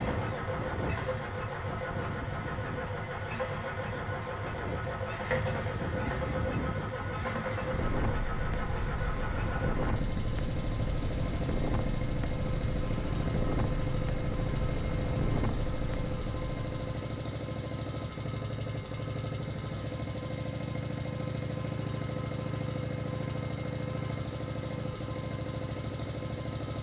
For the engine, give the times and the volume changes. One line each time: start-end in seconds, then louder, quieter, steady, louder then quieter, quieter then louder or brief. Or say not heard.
0.0-26.7 steady.